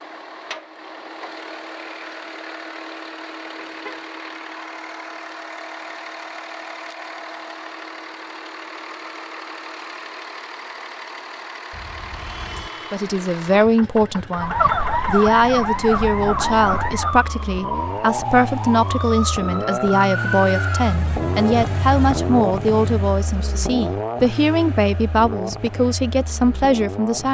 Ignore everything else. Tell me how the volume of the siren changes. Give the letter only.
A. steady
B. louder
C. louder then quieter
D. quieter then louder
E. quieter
E.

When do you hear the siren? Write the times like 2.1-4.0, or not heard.
14.3-23.2.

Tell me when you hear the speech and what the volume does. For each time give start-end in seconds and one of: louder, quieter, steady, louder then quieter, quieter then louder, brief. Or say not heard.
12.9-27.2 steady.